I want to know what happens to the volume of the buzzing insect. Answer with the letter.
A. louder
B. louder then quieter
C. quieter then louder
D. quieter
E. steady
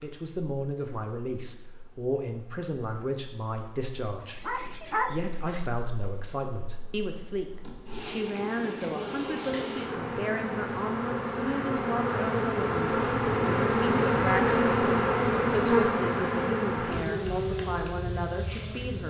A.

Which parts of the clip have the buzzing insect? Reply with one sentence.
The buzzing insect can be heard from 0.0 to 19.0 s.